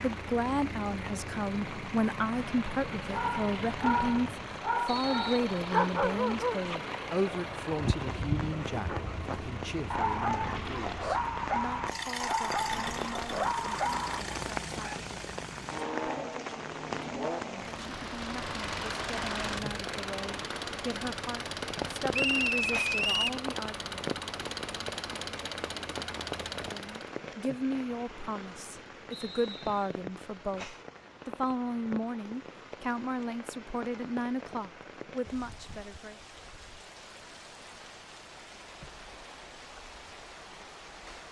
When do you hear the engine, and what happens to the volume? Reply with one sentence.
The engine can be heard from 0.0 to 27.1 s, at a steady volume.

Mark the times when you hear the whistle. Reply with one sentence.
The whistle can be heard from 4.8 to 5.8 s, from 22.1 to 23.4 s and from 29.1 to 29.9 s.